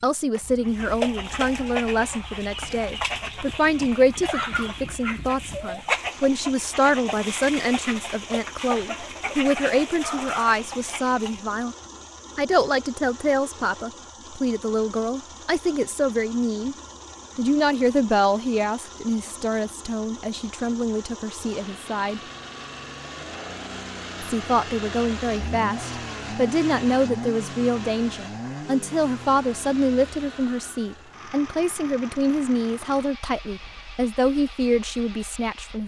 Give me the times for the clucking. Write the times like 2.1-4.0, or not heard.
0.6-11.4.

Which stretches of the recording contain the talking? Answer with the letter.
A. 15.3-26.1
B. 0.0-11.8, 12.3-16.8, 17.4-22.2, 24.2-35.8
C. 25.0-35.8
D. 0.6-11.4
B.